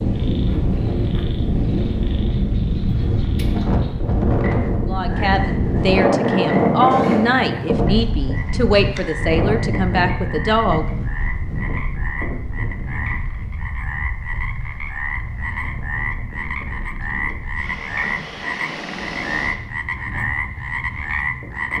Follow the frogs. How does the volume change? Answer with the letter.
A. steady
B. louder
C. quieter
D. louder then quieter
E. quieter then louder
B.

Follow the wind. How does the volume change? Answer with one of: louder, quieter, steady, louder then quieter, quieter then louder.
quieter.